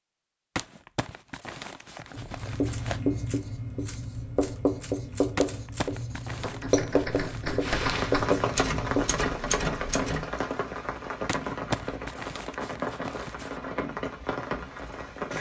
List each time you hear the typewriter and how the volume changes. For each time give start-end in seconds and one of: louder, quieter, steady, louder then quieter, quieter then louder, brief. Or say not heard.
2.5-10.3 louder.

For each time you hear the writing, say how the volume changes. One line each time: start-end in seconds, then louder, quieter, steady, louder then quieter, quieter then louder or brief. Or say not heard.
2.1-9.2 steady.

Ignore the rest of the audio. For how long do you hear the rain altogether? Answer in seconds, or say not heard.
8 s.